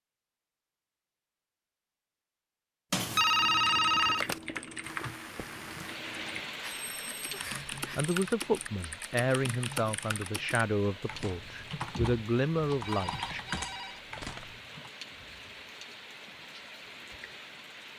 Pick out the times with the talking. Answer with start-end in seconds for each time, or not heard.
8.0-13.4.